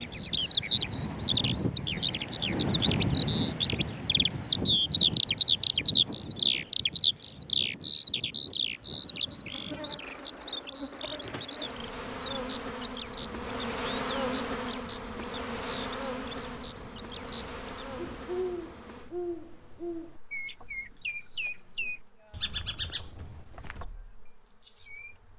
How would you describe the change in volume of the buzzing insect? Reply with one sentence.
The loudness of the buzzing insect goes up, then down.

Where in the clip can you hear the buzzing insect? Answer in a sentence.
The buzzing insect can be heard from 8.6 to 25.3 s.